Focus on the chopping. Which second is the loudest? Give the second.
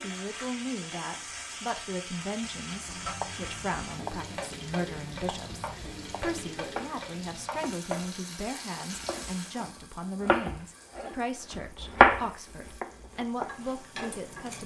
12 s.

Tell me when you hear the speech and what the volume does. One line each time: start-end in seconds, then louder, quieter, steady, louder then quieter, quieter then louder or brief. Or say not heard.
0.0-14.6 steady.